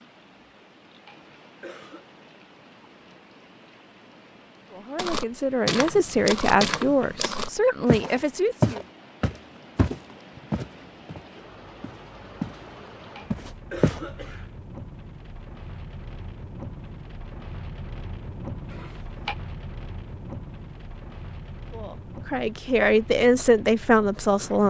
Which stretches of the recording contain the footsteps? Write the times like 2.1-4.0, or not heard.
5.0-12.6, 13.3-14.0.